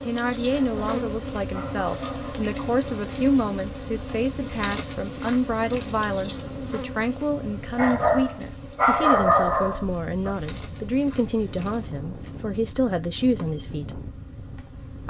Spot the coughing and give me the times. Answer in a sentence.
You can't hear the coughing here.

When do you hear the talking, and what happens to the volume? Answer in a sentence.
The talking can be heard from 0.0 to 14.0 s, at a steady volume.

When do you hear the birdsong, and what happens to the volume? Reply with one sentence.
The birdsong can't be heard in this clip.